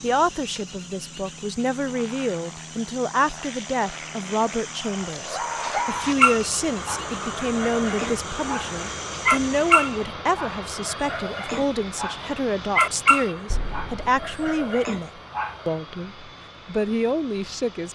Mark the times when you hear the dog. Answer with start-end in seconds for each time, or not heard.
5.1-15.7.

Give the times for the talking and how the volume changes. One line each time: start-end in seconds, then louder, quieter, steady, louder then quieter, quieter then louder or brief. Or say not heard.
0.0-17.9 steady.